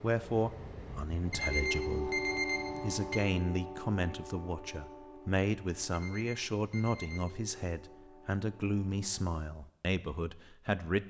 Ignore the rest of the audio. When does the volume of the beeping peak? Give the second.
2 s.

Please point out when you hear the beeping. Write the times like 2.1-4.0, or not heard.
1.3-3.2, 5.9-7.3.